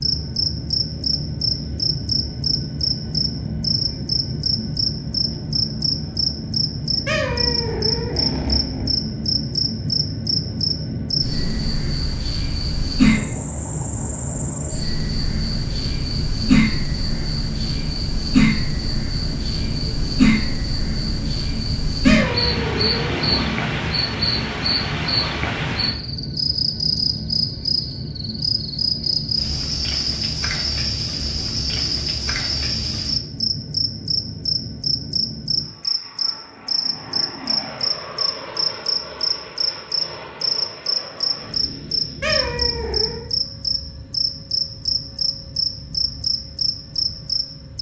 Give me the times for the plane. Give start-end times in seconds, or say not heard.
0.0-47.7.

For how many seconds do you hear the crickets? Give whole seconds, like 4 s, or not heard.
48 s.